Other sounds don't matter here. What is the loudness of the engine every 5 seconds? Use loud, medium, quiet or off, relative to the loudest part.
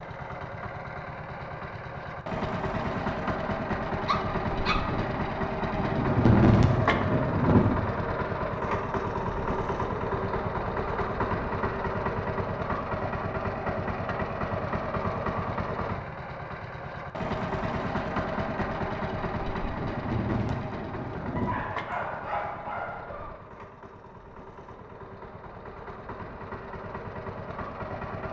loud, loud, loud, loud, medium, medium.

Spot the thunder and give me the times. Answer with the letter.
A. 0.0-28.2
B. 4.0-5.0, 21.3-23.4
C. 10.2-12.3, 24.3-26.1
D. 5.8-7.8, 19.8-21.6
D.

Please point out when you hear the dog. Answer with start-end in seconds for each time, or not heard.
4.0-5.0, 21.3-23.4.